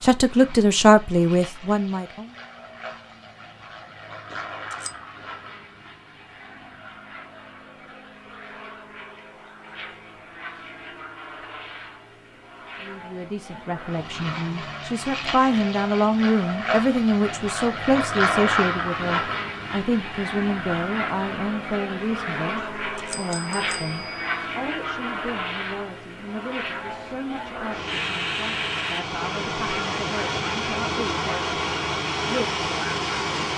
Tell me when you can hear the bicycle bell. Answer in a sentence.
You can hear the bicycle bell from 4.3 to 5.0 s and from 22.6 to 24.4 s.